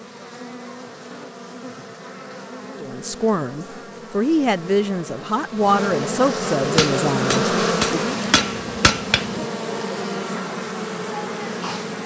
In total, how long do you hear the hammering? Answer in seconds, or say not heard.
3 s.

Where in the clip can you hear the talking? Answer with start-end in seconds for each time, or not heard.
2.8-8.2.